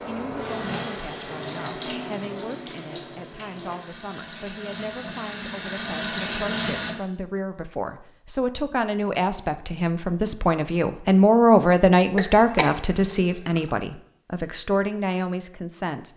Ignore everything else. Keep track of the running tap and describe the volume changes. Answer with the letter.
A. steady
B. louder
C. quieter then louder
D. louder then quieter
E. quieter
C.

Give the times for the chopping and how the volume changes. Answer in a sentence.
You can't hear the chopping here.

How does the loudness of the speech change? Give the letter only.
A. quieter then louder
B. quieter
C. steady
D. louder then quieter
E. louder
D.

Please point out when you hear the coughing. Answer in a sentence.
You can hear the coughing from 12.2 to 13.7 s.